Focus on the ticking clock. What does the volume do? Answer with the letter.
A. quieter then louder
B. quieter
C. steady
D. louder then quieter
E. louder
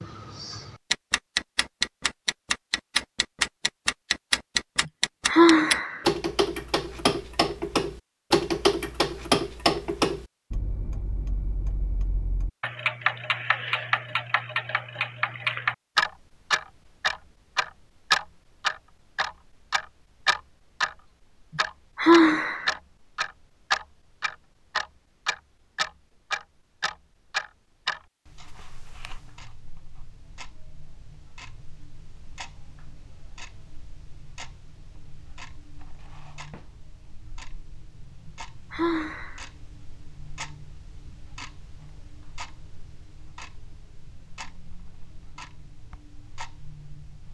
B.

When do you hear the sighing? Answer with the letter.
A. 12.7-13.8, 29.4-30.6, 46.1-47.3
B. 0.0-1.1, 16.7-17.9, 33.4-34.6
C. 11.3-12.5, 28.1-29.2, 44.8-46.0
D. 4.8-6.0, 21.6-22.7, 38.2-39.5
D.